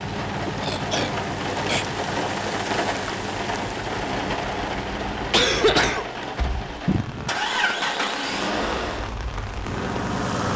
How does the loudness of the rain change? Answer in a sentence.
The volume of the rain goes down.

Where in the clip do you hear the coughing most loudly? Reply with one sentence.
The loudest moment of the coughing is at 6 seconds.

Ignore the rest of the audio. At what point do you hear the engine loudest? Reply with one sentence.
The volume of the engine peaks at 8 seconds.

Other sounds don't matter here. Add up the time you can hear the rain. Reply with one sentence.
The rain can be heard for 10 seconds in total.